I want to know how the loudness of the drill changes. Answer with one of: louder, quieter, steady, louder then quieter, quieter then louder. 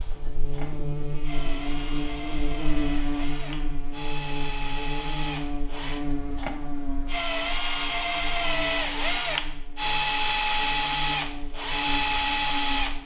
louder.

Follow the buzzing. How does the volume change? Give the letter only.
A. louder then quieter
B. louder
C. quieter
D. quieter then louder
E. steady
C.